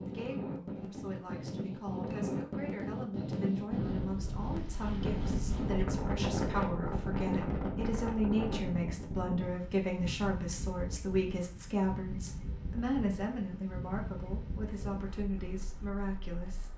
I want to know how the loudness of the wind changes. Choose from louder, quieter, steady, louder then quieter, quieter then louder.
quieter.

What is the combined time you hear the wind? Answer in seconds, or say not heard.
17 s.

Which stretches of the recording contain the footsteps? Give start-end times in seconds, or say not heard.
not heard.